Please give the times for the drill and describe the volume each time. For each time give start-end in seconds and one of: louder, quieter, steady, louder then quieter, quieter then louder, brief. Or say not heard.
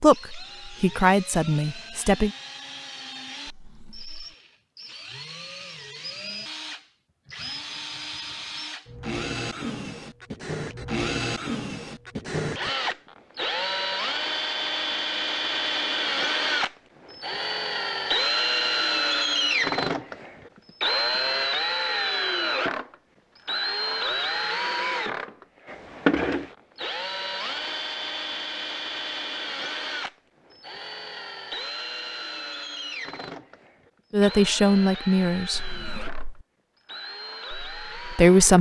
0.0-38.5 louder then quieter.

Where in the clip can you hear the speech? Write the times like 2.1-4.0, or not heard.
0.0-2.3, 34.1-35.7, 37.5-38.5.